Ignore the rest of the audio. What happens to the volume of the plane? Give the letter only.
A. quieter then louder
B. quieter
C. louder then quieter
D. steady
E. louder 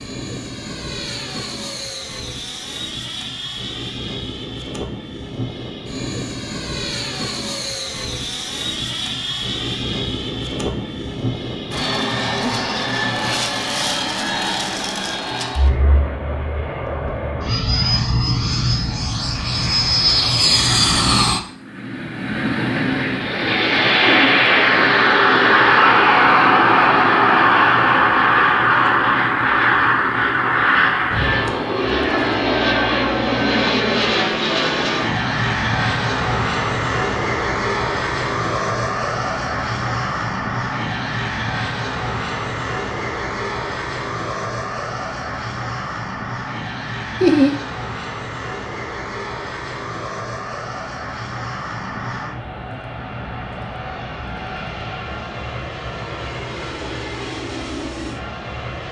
C.